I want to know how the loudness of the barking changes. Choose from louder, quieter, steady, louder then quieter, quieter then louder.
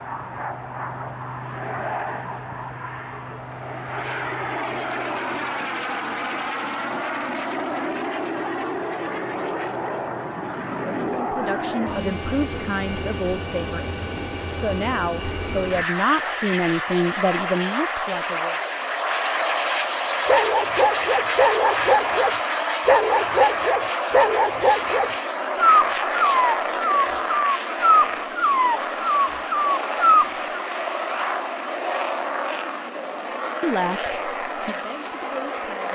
steady.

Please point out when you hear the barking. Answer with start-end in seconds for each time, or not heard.
20.2-30.6.